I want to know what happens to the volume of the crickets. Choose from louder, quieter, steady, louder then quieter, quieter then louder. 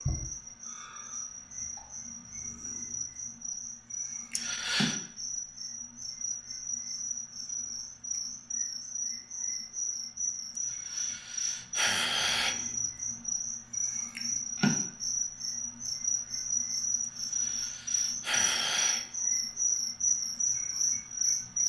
louder.